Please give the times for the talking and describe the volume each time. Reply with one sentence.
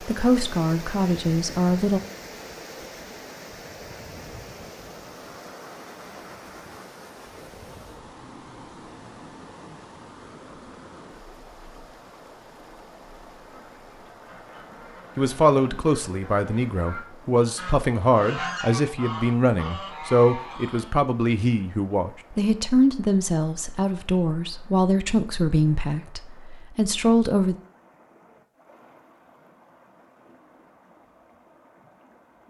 The talking can be heard briefly from 0.0 to 2.0 s; and from 15.2 to 27.6 s, at a steady volume.